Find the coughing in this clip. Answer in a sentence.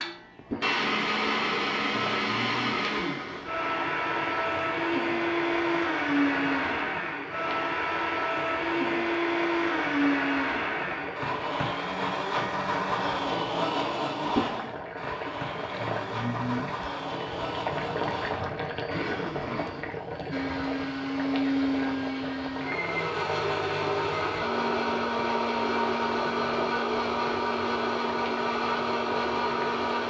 You can't hear the coughing here.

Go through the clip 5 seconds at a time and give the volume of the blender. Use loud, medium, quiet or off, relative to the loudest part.
loud, loud, loud, medium, loud, loud.